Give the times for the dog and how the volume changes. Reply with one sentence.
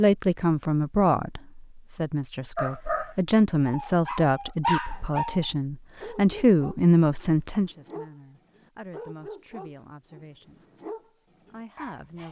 You can hear the dog from 2.5 to 12.2 s, getting quieter.